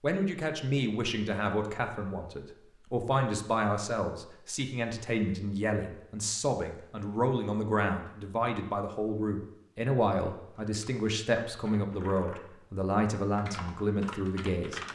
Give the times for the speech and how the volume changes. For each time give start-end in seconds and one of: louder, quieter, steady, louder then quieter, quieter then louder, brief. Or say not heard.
0.0-14.8 steady.